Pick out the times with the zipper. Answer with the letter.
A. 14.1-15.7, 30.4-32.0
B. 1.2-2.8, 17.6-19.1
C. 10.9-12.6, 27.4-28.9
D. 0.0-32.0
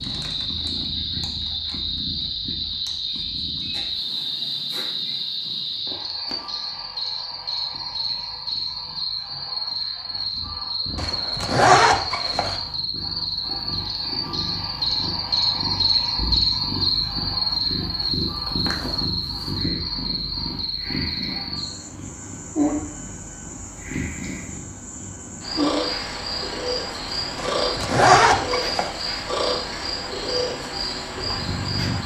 C.